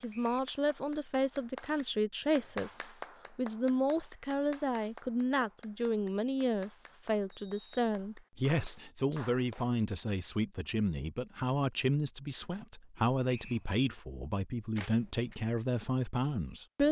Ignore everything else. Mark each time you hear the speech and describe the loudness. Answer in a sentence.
The speech can be heard from 0.0 to 16.8 s, at a steady volume.